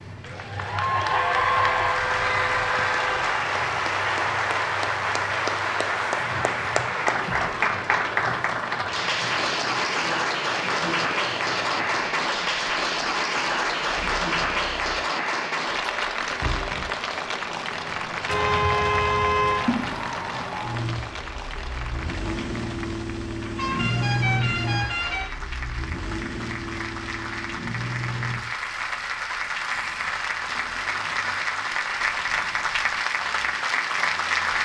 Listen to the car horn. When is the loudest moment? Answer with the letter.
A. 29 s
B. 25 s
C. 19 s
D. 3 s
C.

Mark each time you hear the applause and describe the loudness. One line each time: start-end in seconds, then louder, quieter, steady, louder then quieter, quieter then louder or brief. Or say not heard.
0.0-34.6 quieter then louder.